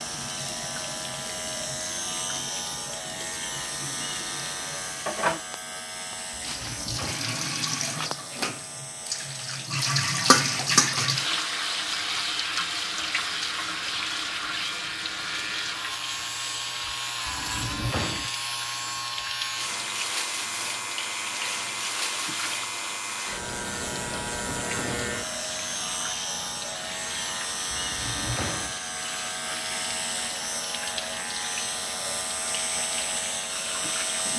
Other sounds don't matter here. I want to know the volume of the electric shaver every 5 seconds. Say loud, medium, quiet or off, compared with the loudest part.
loud, medium, medium, loud, loud, loud, loud.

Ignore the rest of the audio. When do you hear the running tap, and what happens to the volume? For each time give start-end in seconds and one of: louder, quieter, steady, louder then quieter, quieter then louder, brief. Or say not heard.
0.0-34.3 louder then quieter.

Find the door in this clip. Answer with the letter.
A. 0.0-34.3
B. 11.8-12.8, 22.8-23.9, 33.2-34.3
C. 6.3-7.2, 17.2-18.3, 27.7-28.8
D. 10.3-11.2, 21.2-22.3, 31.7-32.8
C.